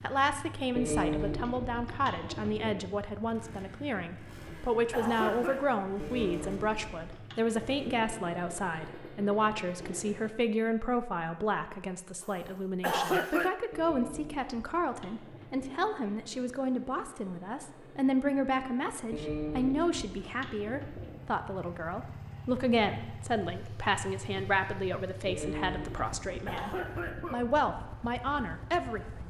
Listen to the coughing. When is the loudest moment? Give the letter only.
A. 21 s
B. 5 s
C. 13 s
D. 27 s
C.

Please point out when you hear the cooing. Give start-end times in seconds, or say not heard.
0.8-2.8, 6.0-8.0, 13.7-15.8, 19.1-21.1, 25.2-27.3.